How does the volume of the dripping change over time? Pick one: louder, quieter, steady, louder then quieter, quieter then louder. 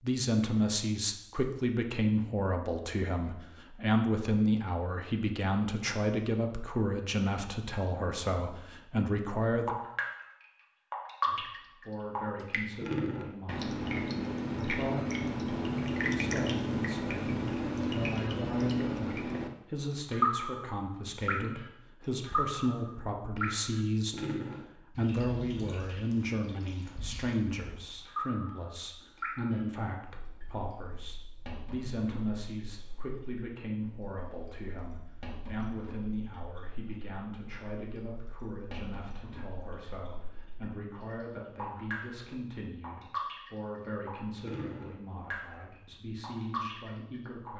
quieter then louder.